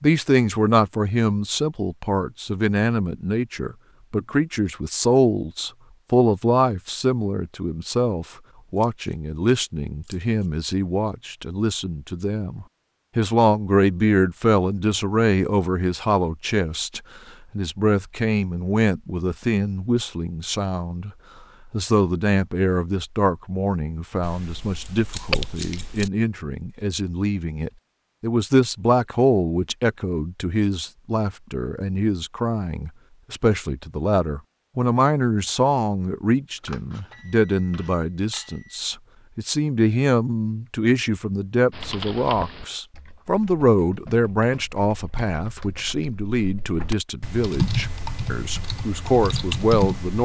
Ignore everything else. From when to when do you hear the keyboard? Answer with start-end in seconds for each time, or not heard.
41.7-50.1.